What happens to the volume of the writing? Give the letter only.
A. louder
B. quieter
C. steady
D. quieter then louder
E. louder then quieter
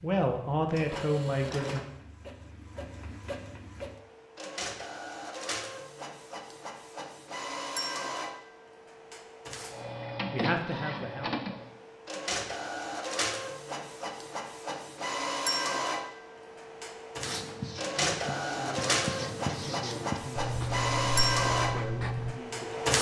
A.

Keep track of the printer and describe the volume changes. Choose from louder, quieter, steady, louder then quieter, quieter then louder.
louder.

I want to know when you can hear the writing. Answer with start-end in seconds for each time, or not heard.
17.2-22.4.